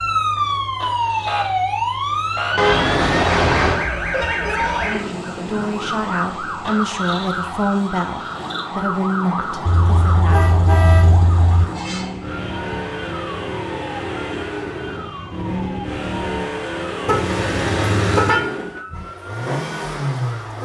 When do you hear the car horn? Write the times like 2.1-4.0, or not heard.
2.5-3.9, 9.7-11.7, 17.1-18.4.